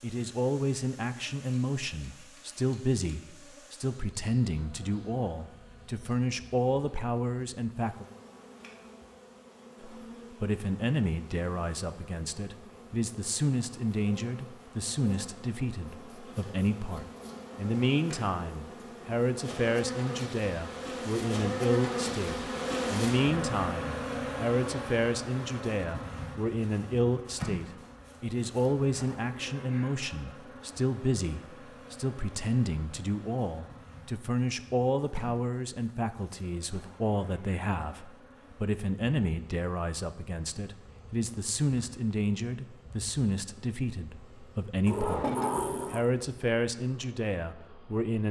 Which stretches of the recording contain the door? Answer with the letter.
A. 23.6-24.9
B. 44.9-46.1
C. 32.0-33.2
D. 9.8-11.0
B.